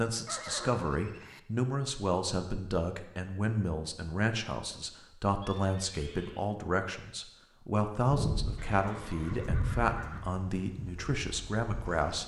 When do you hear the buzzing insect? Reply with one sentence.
The buzzing insect can be heard from 8.0 to 12.2 s.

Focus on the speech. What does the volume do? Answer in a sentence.
The loudness of the speech stays about the same.